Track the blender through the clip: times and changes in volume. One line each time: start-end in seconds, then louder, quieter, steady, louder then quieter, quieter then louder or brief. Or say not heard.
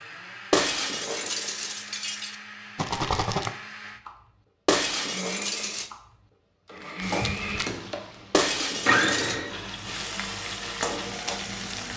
0.0-11.9 louder then quieter.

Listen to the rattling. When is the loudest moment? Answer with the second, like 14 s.
3 s.